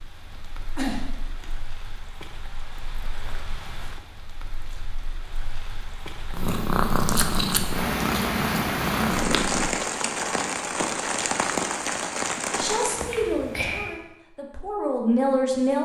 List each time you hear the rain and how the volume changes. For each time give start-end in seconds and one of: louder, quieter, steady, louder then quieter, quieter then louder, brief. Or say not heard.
0.0-13.2 louder.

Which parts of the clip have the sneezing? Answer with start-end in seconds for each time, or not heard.
0.8-1.4, 13.1-13.9.